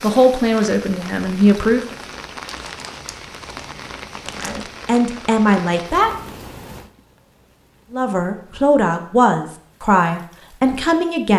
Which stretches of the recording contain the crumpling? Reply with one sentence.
You can hear the crumpling from 2.5 to 4.7 s.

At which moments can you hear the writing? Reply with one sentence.
You can't hear the writing here.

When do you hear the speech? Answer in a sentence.
You can hear the speech from 0.0 to 1.9 s, from 4.4 to 6.1 s and from 7.9 to 11.3 s.